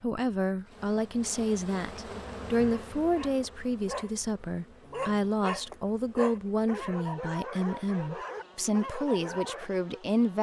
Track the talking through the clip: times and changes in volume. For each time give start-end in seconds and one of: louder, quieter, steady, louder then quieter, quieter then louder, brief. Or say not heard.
0.0-10.3 steady.